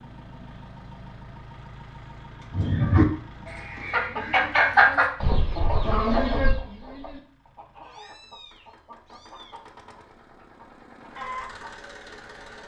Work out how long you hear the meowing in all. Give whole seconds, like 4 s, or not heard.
2 s.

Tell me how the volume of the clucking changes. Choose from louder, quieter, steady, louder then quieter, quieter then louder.
quieter then louder.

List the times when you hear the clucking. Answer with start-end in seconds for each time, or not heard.
2.5-12.6.